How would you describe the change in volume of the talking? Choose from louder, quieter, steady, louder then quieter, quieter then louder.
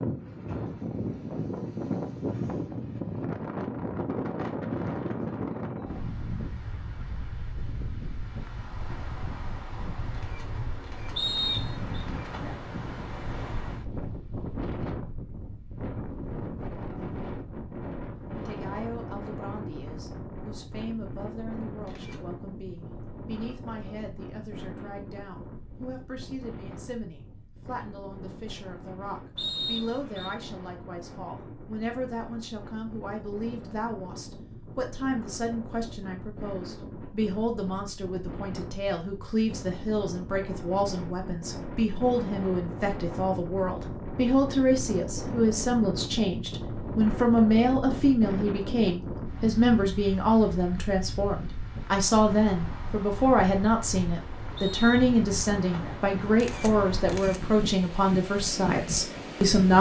louder.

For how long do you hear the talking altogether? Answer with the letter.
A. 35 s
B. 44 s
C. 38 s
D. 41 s
D.